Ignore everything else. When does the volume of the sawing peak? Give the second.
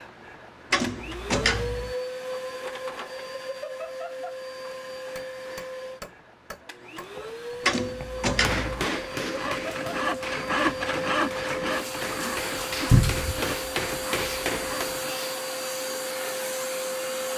11 s.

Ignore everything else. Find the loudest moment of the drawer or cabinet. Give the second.
13 s.